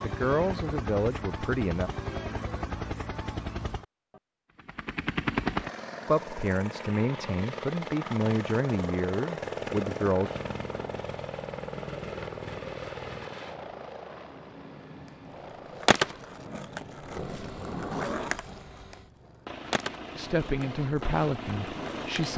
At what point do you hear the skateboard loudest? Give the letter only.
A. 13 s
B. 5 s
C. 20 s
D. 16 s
D.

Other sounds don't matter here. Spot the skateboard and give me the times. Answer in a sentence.
You can hear the skateboard from 15.7 to 22.3 s.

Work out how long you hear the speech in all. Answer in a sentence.
You can hear the speech for 8 seconds altogether.